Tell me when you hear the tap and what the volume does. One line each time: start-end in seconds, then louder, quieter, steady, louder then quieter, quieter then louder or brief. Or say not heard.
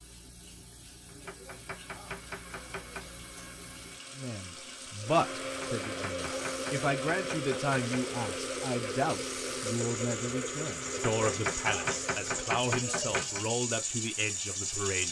0.0-15.0 louder.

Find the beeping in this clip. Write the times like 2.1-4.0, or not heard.
not heard.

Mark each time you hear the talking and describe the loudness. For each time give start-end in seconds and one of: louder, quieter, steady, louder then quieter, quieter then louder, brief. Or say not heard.
4.2-15.0 steady.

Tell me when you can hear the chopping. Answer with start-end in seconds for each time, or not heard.
1.1-3.1, 5.4-8.2, 10.8-13.4.